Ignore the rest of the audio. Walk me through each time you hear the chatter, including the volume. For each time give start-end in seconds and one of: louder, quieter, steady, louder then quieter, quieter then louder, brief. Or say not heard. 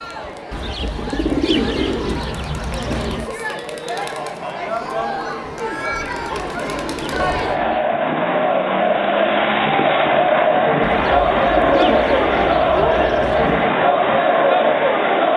0.0-15.3 louder.